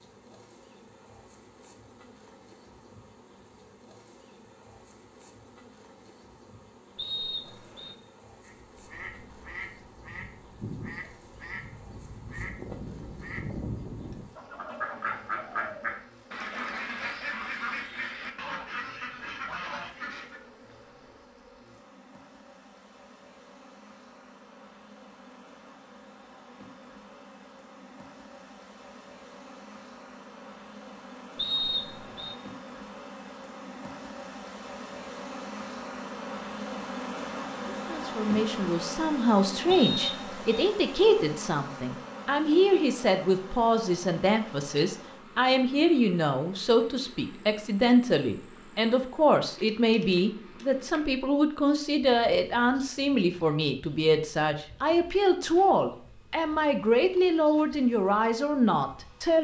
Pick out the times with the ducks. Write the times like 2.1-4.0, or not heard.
8.4-20.4.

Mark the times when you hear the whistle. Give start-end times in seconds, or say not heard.
7.0-8.0, 31.4-32.4, 39.7-40.6.